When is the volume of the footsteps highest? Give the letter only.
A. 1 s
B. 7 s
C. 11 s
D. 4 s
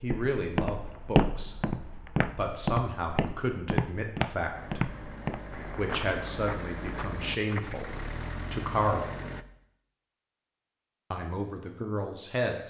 A.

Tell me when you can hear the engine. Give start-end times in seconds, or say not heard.
4.5-9.4.